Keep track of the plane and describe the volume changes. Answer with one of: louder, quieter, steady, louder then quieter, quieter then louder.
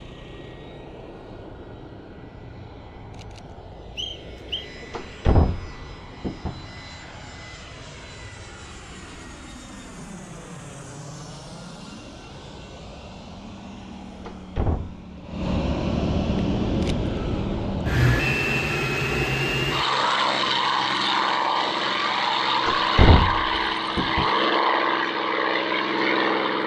louder.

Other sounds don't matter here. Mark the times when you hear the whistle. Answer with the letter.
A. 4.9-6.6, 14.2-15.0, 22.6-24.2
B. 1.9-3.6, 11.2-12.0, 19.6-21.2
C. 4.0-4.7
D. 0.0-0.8
C.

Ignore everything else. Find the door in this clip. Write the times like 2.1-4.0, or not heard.
4.9-6.6, 14.2-15.0, 22.6-24.2.